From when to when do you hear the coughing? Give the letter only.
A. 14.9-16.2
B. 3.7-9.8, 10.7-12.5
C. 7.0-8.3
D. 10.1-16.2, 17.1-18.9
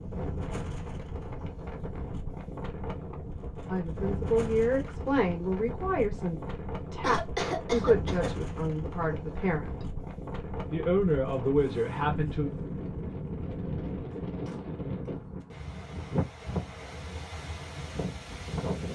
C.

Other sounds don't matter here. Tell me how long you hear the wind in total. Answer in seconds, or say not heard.
19 s.